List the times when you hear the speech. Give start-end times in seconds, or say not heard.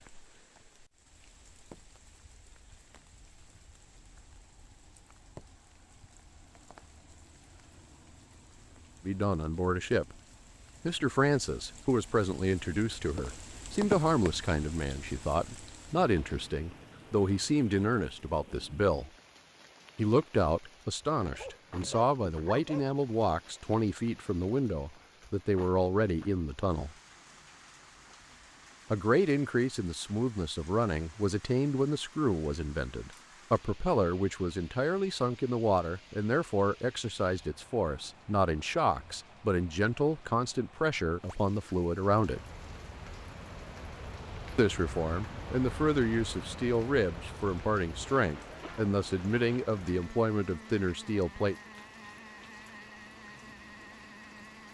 9.1-10.2, 10.8-19.1, 19.9-26.9, 28.9-42.4, 44.5-51.5.